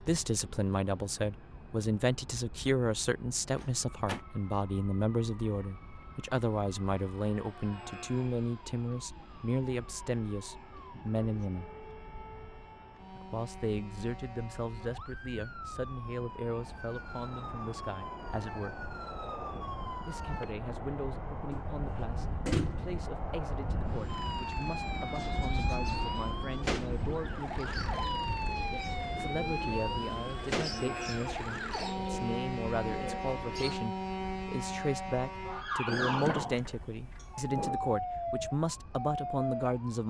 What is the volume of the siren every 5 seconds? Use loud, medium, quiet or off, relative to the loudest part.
quiet, quiet, quiet, medium, medium, loud, loud, loud.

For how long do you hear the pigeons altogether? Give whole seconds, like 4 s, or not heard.
9 s.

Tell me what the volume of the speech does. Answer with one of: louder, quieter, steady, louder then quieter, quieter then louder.
quieter then louder.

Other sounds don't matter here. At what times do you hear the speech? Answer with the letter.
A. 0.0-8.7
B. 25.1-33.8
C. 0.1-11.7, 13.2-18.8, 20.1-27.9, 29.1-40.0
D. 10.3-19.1
C.